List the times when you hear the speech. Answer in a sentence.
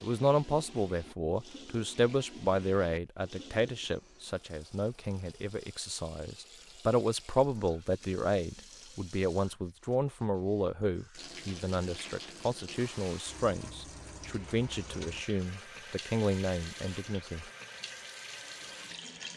The speech can be heard from 0.0 to 17.4 s.